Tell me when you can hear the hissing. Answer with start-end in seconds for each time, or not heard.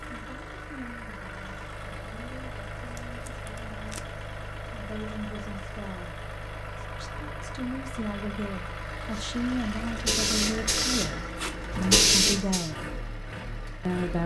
9.2-12.7.